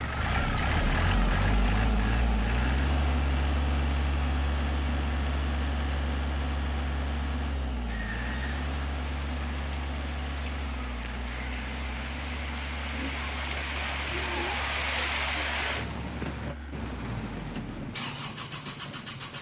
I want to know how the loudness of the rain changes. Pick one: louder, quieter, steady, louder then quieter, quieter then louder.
louder then quieter.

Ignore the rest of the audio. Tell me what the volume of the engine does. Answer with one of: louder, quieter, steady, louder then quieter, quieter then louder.
quieter.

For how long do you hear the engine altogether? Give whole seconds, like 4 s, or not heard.
19 s.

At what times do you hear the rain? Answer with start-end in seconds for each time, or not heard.
7.8-19.3.